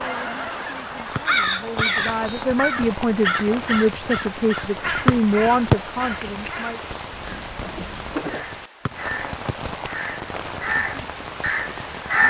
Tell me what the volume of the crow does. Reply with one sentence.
The volume of the crow goes down, then up.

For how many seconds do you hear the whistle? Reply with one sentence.
The whistle can be heard for 3 seconds in total.